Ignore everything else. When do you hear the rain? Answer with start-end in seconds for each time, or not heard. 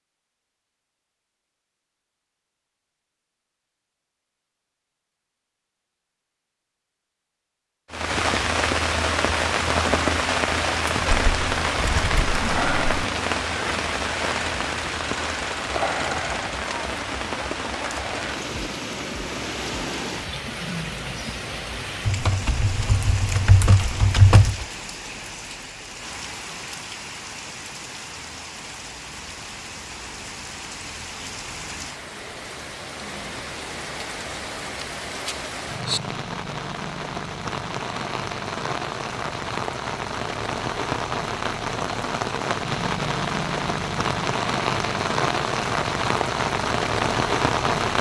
7.9-47.9.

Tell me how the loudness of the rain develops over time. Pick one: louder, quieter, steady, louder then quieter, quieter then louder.
quieter then louder.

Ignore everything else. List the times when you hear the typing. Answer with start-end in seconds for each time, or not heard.
11.2-13.1, 22.1-24.6, 34.8-36.0.